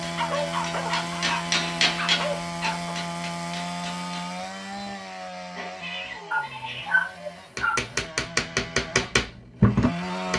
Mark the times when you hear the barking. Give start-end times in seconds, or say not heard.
0.1-2.9, 6.3-7.8.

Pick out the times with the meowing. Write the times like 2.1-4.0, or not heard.
5.5-7.0.